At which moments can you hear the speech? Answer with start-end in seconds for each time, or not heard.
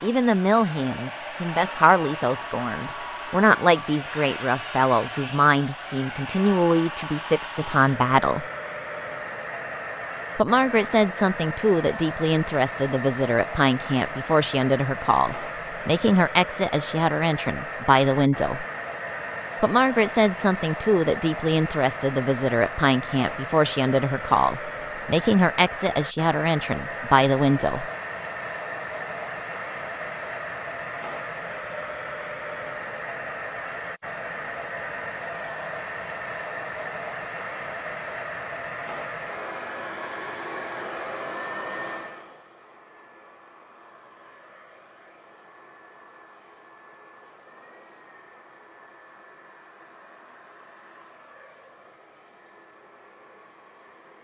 0.0-8.4, 10.3-18.6, 19.6-27.9.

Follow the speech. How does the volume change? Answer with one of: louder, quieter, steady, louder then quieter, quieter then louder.
steady.